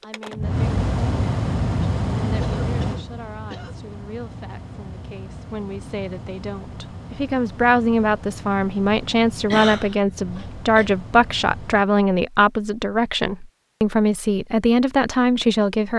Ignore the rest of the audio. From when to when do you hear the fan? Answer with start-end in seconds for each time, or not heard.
0.0-11.8.